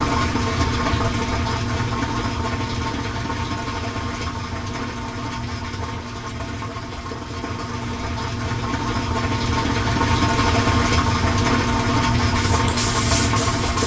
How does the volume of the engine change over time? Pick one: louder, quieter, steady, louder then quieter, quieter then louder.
quieter then louder.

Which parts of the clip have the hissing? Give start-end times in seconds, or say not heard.
12.3-13.8.